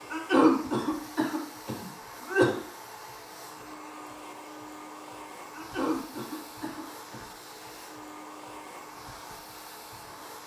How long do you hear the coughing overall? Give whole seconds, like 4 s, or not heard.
4 s.